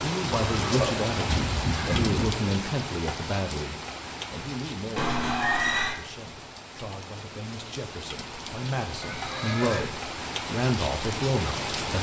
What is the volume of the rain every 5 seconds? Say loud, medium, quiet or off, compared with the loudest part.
loud, medium, loud.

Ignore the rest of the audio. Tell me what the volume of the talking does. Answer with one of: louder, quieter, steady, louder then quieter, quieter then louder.
quieter then louder.